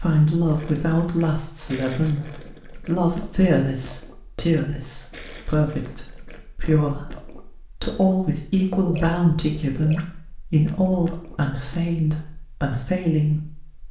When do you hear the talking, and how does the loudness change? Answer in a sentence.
You can hear the talking from 0.0 to 13.8 s, at a steady volume.